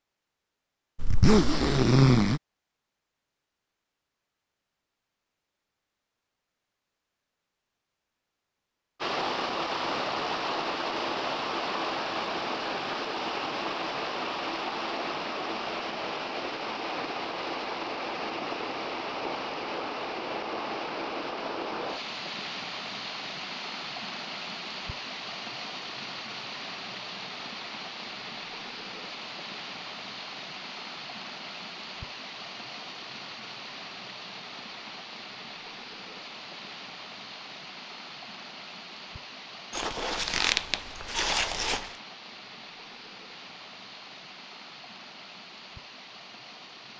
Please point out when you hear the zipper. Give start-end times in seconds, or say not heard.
0.9-2.4, 39.8-41.9.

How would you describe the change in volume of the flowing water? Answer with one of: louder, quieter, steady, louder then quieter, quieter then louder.
quieter.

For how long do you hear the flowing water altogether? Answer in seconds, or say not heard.
38 s.